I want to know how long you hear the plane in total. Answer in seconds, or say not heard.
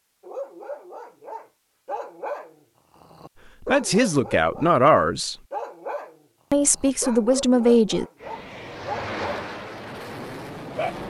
3 s.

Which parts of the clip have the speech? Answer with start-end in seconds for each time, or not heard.
3.6-5.3, 6.5-8.1.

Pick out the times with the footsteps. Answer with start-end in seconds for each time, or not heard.
not heard.